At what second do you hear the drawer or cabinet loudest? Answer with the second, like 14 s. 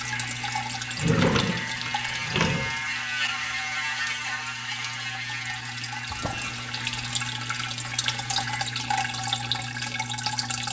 1 s.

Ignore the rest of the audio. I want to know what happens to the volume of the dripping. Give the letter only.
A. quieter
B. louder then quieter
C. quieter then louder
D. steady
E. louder
C.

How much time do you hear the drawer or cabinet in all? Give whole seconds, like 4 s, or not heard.
3 s.